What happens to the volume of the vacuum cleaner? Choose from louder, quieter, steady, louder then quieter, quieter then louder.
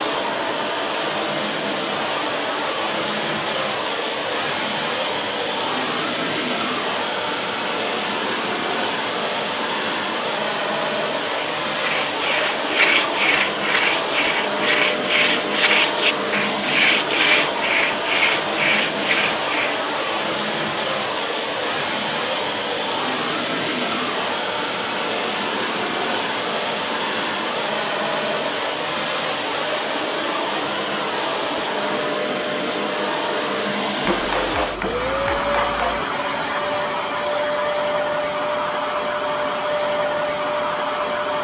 steady.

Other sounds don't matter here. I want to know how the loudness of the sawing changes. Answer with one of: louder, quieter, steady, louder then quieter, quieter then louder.
steady.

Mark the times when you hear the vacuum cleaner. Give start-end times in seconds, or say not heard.
0.0-41.3.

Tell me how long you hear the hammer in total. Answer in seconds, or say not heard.
2 s.